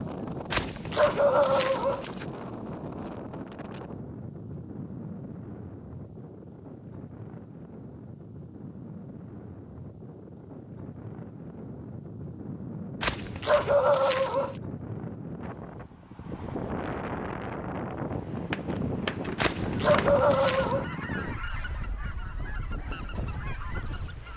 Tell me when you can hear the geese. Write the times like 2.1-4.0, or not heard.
18.1-24.3.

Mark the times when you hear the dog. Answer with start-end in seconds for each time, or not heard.
0.5-2.2, 13.0-14.6, 19.4-20.9.